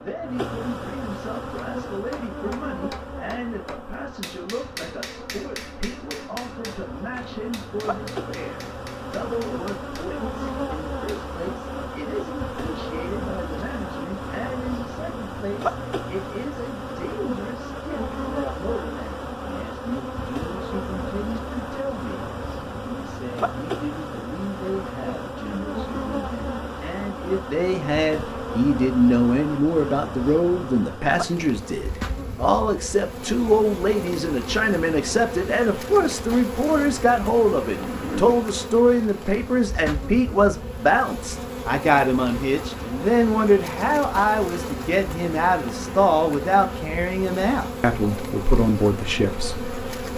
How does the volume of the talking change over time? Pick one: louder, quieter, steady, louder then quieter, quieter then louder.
louder.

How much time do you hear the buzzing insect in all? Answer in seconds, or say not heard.
50 s.